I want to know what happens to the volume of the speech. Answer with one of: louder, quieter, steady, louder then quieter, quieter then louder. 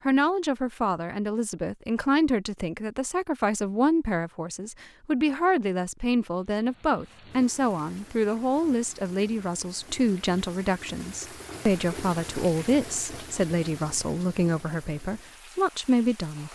steady.